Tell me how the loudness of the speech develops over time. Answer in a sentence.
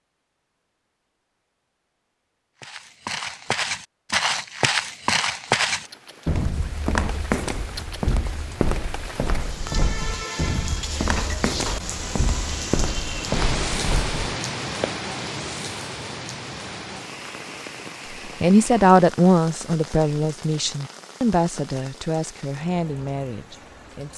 The volume of the speech goes down.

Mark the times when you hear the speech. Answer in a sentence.
The speech can be heard from 18.4 to 24.1 s.